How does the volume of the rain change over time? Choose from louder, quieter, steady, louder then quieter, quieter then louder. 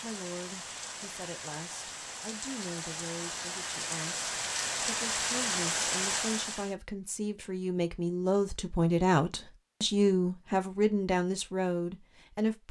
louder.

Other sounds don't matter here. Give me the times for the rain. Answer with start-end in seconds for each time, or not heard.
0.0-6.8.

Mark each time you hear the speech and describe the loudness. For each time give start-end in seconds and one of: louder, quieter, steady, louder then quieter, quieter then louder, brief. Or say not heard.
0.0-12.6 louder.